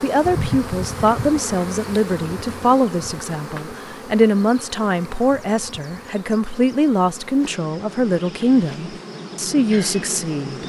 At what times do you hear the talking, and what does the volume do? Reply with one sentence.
The talking can be heard from 0.0 to 10.6 s, at a steady volume.